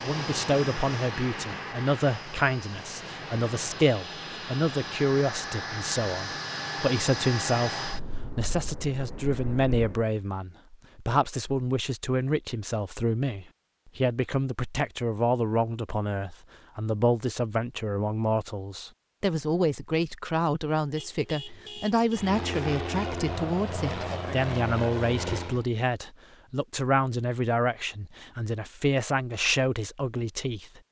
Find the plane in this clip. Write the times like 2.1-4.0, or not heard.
0.0-10.1, 22.1-25.6.